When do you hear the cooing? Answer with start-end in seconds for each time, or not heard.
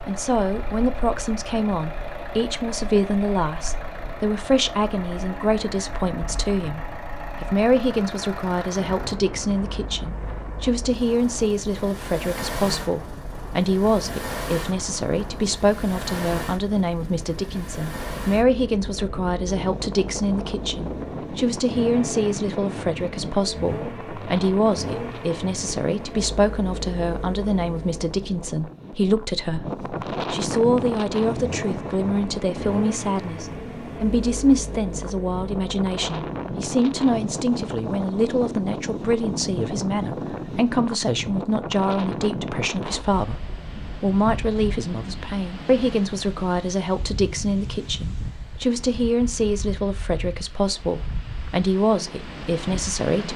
not heard.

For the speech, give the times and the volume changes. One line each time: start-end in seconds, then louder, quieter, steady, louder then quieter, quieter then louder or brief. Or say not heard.
0.0-53.3 steady.